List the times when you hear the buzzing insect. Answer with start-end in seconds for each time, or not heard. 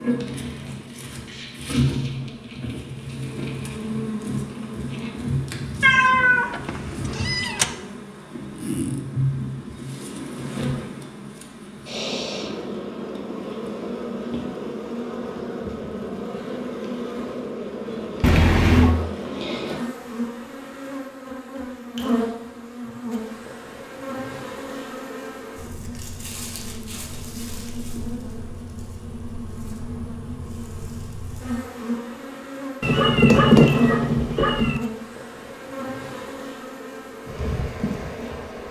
0.0-38.6.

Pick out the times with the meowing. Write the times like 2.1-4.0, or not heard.
5.8-7.7, 18.2-18.9, 32.8-34.8.